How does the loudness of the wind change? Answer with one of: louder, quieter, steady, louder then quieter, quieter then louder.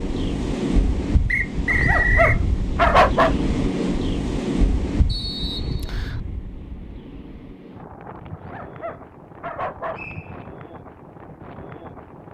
quieter.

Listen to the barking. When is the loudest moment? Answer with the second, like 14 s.
3 s.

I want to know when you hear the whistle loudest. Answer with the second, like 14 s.
2 s.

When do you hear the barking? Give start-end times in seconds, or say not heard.
1.7-3.4, 8.3-10.0.